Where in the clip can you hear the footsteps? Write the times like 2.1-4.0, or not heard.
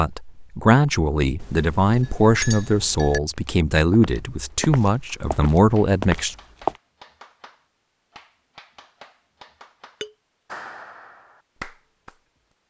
3.3-6.8.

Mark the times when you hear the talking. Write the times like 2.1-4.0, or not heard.
0.0-6.3.